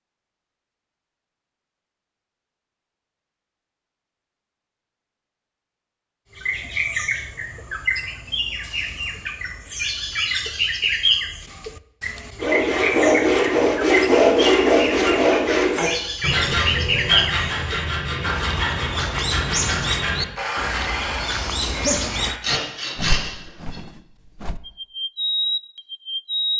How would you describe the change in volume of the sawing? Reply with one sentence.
The loudness of the sawing goes down.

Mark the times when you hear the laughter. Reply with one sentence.
The laughter can be heard from 21.7 to 22.3 s.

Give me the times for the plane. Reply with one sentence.
You can't hear the plane here.